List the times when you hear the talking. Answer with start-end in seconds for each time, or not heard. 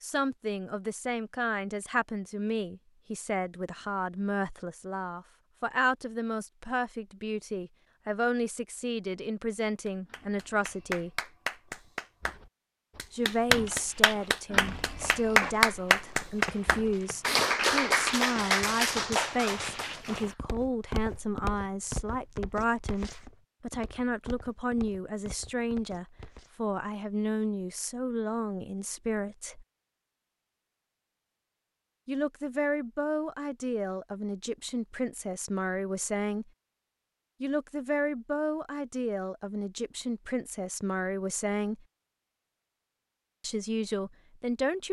0.0-11.1, 13.1-29.6, 32.0-36.5, 37.4-41.9, 43.4-44.8.